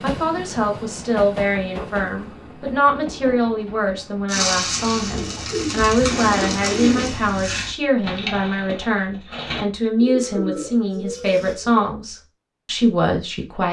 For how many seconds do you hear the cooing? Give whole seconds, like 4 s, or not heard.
8 s.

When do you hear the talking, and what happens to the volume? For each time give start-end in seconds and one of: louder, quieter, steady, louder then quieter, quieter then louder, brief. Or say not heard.
0.0-13.6 steady.